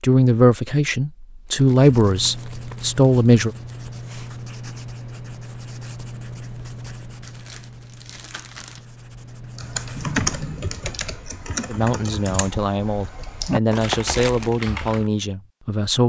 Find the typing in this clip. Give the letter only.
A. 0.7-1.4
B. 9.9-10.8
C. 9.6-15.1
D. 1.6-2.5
C.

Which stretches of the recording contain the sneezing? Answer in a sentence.
You can hear the sneezing from 9.9 to 10.8 s.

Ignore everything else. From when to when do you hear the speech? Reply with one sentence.
The speech can be heard from 0.0 to 3.5 s and from 11.7 to 16.0 s.